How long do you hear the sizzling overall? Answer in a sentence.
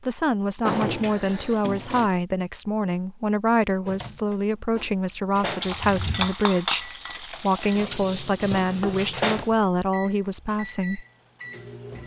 You can hear the sizzling for 4 seconds altogether.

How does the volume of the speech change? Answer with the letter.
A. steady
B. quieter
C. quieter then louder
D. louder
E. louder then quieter
A.